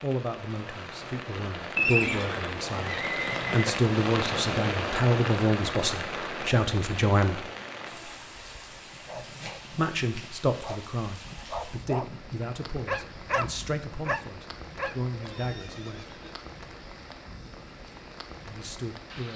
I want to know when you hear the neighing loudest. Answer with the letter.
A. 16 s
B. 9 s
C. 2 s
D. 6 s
C.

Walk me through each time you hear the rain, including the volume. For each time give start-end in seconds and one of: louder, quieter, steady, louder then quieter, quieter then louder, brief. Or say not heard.
0.0-19.3 quieter.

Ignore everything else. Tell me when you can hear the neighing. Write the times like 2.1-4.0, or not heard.
1.8-3.8, 15.1-16.5.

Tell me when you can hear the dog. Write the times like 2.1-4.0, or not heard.
8.8-15.1.